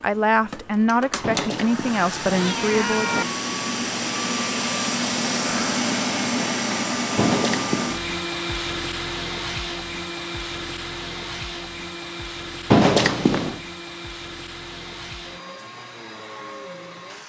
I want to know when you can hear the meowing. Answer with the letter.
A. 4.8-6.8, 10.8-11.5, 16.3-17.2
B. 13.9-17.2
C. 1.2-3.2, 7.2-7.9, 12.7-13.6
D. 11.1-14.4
C.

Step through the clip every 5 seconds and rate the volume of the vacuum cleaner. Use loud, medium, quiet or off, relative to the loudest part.
loud, loud, medium, quiet.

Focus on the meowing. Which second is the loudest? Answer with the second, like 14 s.
13 s.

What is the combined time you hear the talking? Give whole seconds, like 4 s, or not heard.
3 s.